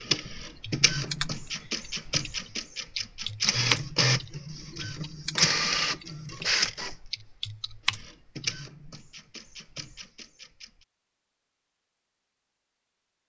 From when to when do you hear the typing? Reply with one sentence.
You can hear the typing from 0.6 to 8.6 s.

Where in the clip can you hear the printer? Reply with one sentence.
The printer can be heard from 0.0 to 10.8 s.